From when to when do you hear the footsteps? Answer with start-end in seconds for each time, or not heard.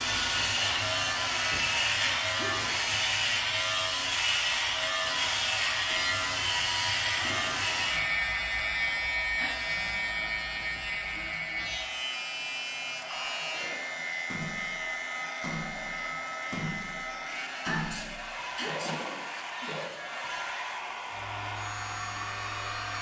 not heard.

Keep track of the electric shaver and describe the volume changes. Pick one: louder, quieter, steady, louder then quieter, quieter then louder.
quieter.